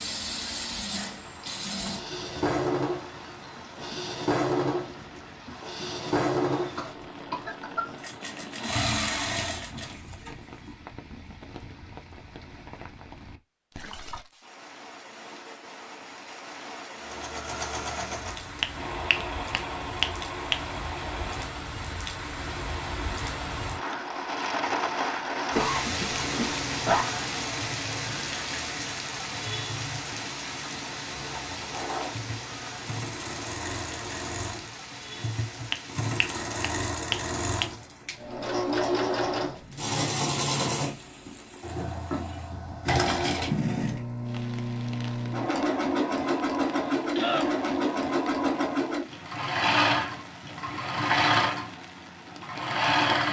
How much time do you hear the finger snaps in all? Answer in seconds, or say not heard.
4 s.